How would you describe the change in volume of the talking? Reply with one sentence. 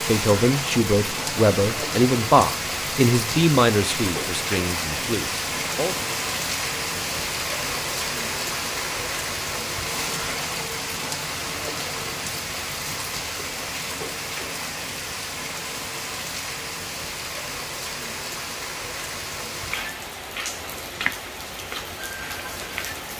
The volume of the talking goes down.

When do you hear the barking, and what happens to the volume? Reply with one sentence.
The barking can't be heard in this clip.